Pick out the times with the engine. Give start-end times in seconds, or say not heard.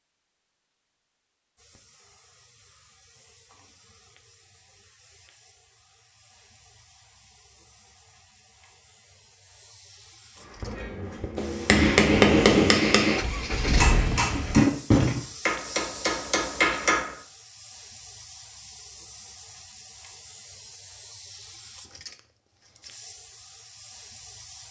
10.6-14.7.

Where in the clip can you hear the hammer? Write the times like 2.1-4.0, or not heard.
10.6-17.1.